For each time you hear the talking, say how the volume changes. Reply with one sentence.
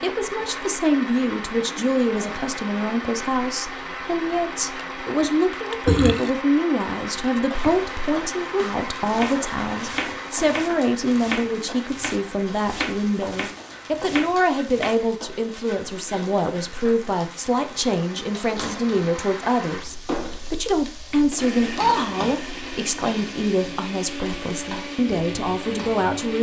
The talking can be heard from 0.0 to 26.3 s, at a steady volume.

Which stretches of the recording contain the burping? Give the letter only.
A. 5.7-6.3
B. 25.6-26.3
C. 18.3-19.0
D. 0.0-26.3
A.